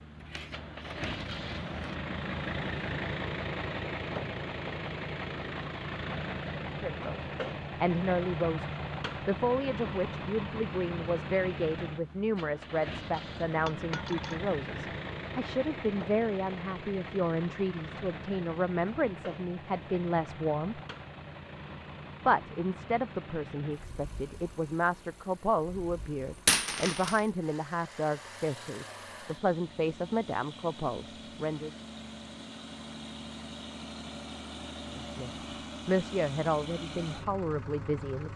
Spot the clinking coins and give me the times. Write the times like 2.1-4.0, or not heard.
0.1-1.9, 13.7-14.4, 26.3-27.3.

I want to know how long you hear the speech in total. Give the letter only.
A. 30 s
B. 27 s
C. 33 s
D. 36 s
B.